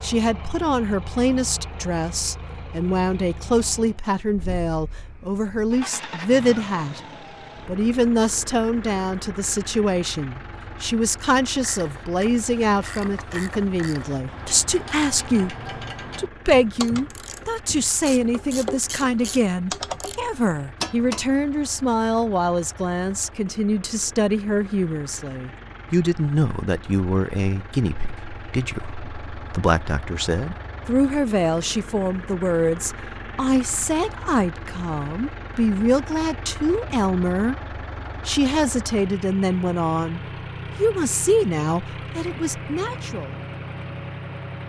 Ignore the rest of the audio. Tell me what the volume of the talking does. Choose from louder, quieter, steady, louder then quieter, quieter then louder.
steady.